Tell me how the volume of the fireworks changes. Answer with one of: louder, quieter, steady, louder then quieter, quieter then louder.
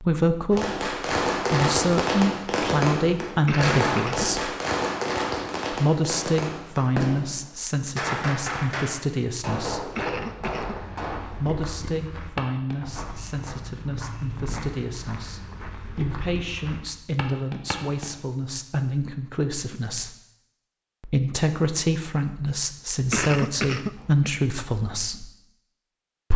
quieter.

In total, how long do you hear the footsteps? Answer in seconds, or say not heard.
8 s.